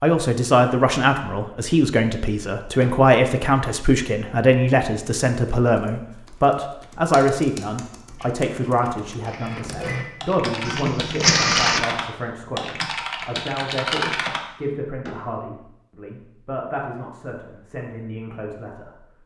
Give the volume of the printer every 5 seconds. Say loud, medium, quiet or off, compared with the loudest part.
off, quiet, loud, off.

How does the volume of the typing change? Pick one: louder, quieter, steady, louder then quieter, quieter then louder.
louder.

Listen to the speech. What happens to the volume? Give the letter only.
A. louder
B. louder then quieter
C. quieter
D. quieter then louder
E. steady
C.